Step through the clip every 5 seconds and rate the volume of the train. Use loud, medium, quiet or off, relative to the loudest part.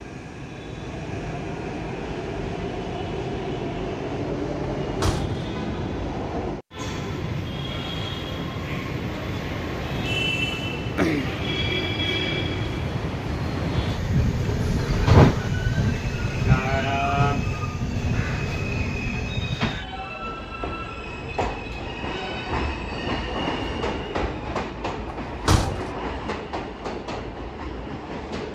medium, medium, loud, loud, medium, medium.